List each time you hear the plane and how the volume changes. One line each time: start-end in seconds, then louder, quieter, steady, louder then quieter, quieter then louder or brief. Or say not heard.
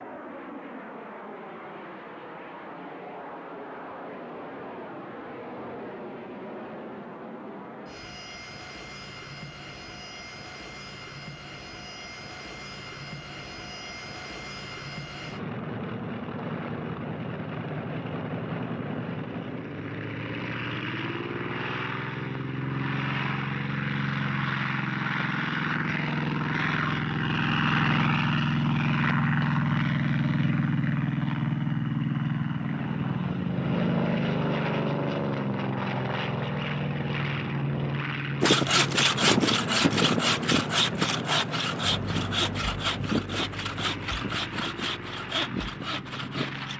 0.0-46.7 louder then quieter.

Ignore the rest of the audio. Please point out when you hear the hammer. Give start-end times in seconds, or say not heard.
not heard.